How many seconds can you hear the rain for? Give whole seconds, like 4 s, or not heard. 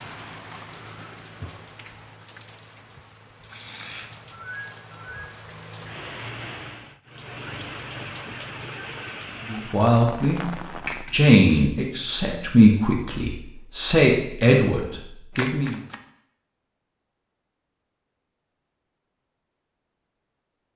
11 s.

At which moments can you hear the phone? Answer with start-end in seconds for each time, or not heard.
4.3-5.3.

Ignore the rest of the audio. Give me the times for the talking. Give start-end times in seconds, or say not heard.
9.4-10.4, 11.1-15.8.